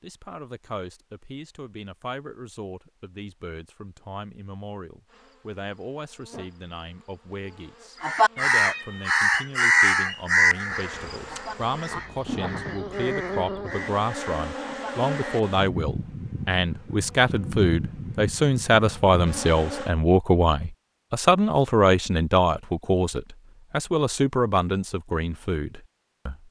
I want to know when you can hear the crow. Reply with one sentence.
You can hear the crow from 8.0 to 15.6 s.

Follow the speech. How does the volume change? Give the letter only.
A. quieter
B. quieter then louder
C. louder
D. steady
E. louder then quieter
C.